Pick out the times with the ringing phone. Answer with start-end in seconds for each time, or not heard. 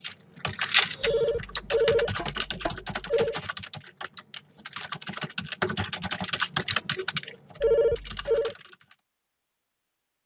1.0-3.4, 7.6-8.6.